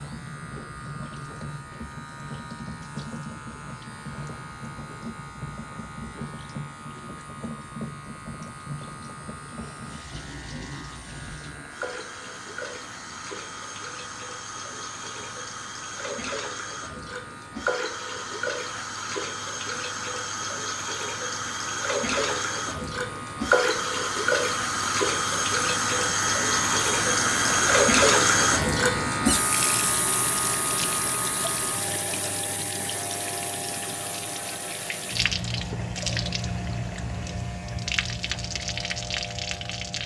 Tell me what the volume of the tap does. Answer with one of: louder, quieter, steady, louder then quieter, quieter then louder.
louder then quieter.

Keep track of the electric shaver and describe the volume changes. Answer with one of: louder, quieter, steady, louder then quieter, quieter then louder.
louder then quieter.